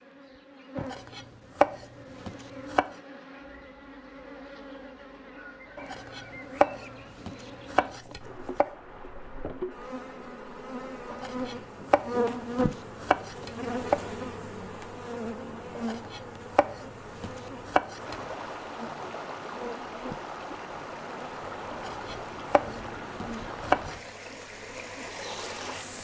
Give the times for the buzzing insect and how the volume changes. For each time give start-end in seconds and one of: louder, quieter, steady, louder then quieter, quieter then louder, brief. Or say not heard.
0.0-25.9 louder then quieter.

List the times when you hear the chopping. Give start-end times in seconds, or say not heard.
0.8-2.9, 5.8-8.7, 11.1-14.0, 15.8-18.1, 21.7-23.9.